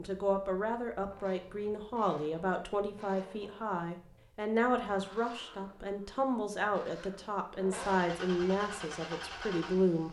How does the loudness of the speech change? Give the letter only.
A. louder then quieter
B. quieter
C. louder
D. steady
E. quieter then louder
D.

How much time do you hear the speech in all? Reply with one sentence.
The speech can be heard for 10 seconds in total.